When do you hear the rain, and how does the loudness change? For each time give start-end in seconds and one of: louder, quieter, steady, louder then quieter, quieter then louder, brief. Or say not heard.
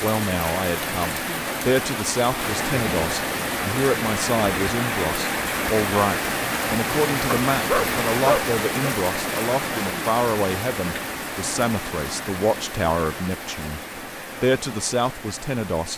0.0-15.9 quieter.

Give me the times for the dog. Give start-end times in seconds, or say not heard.
7.3-8.9.